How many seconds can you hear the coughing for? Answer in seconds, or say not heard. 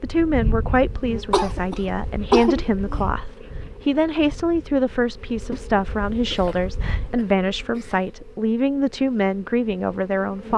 4 s.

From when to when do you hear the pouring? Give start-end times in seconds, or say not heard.
not heard.